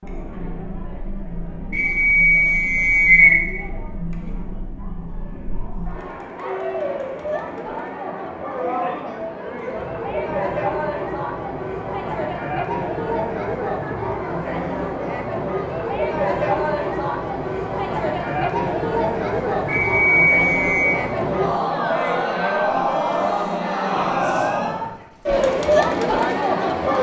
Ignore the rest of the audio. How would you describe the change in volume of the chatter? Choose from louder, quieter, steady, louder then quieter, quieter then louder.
louder.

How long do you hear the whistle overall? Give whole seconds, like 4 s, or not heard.
3 s.